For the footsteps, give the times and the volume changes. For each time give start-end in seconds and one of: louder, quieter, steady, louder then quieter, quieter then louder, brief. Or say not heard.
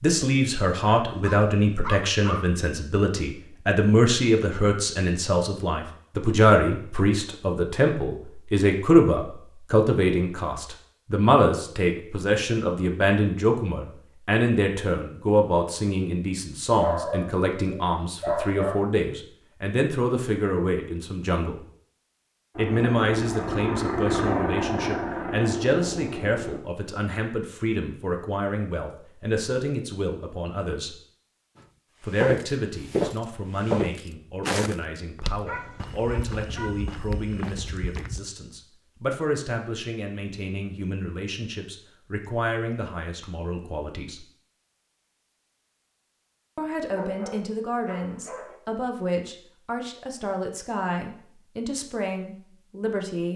32.1-38.2 quieter.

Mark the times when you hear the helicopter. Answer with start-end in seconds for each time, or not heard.
22.5-26.6.